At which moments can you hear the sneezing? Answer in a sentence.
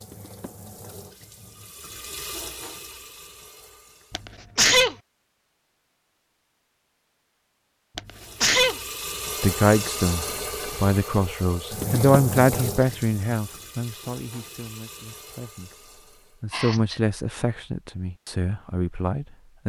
The sneezing can be heard from 4.1 to 5.0 s, from 8.0 to 8.8 s and from 16.5 to 17.0 s.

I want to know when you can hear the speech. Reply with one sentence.
You can hear the speech from 9.4 to 15.7 s and from 16.4 to 19.6 s.